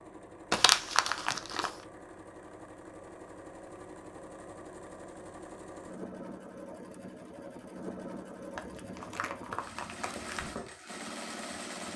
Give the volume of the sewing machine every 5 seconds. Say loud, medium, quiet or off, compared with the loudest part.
medium, loud, loud.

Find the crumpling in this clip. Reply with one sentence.
The crumpling can be heard from 0.5 to 1.8 s and from 8.6 to 10.5 s.